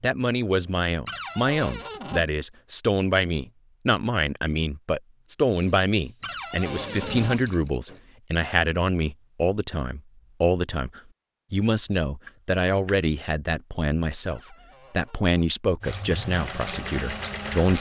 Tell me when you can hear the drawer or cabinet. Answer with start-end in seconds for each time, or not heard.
1.1-2.2, 6.2-7.4, 14.2-15.3.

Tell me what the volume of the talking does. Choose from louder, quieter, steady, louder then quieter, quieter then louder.
steady.